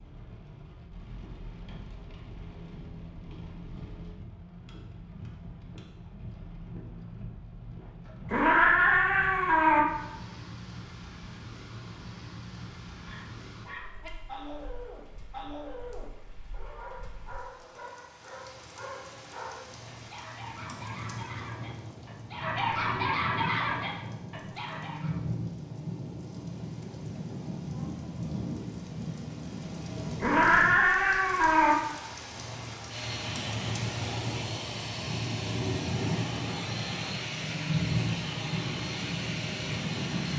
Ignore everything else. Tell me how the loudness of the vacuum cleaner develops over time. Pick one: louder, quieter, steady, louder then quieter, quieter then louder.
steady.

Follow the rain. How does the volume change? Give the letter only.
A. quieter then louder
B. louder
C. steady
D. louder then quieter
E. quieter
B.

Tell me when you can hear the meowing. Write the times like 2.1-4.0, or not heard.
8.3-9.8, 30.2-31.8.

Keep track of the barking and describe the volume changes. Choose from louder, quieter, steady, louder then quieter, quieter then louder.
louder.